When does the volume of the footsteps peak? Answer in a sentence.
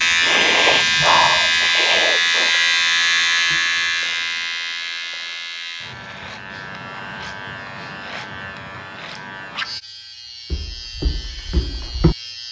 The volume of the footsteps peaks at 12 seconds.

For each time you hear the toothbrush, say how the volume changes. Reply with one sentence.
You can't hear the toothbrush here.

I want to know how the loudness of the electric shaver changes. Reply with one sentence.
The loudness of the electric shaver goes down.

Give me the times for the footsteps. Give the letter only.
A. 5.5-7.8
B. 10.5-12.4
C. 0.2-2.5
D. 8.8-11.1
B.